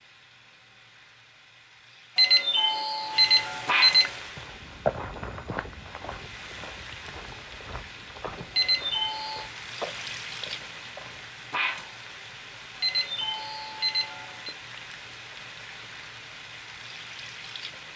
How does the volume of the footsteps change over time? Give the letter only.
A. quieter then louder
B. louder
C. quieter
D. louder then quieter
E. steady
A.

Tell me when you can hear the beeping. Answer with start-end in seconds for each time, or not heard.
2.1-4.2, 8.6-9.5, 12.8-14.6.